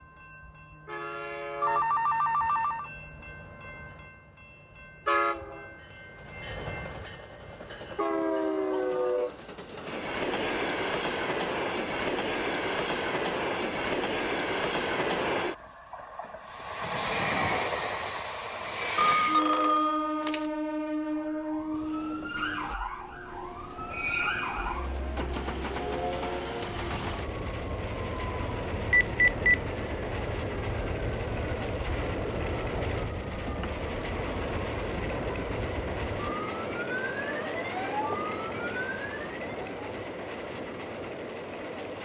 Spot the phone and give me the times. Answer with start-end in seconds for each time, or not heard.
1.6-2.9, 18.9-20.4, 28.9-29.6.